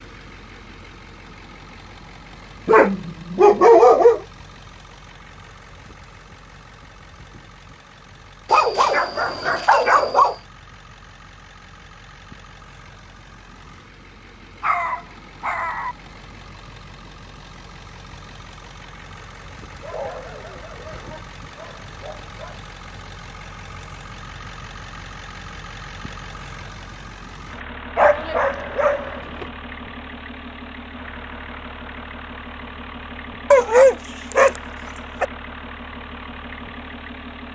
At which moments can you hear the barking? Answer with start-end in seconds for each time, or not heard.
2.6-4.2, 8.5-10.3, 14.6-15.9, 19.7-22.6, 27.9-29.4, 33.5-34.6.